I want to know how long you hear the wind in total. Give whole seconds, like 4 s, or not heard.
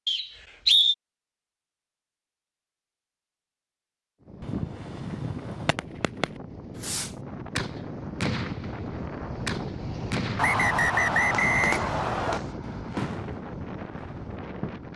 11 s.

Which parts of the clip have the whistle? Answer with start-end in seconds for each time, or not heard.
0.1-0.9, 10.3-12.4.